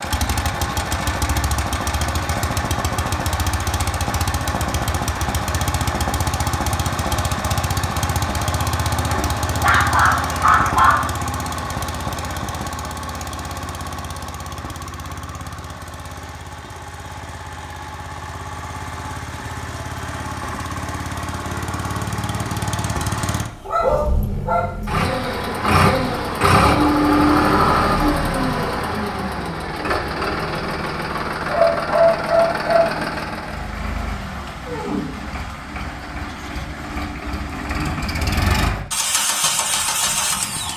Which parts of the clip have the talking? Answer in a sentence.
The talking can't be heard in this clip.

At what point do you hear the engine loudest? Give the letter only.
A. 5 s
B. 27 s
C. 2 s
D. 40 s
B.